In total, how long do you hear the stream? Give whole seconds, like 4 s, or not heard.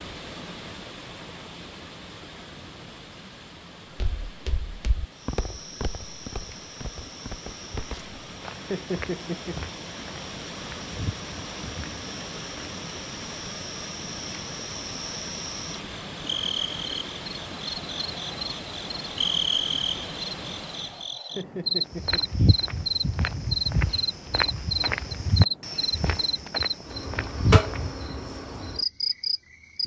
21 s.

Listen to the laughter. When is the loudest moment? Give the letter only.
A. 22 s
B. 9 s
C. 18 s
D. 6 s
B.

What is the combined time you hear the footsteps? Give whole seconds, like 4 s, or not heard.
14 s.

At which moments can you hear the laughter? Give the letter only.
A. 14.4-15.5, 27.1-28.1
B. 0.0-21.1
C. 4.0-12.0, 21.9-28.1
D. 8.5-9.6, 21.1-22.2
D.